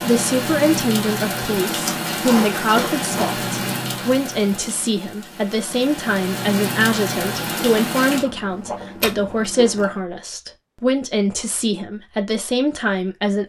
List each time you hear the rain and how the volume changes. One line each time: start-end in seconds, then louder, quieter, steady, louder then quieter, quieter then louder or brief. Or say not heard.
0.0-8.2 quieter then louder.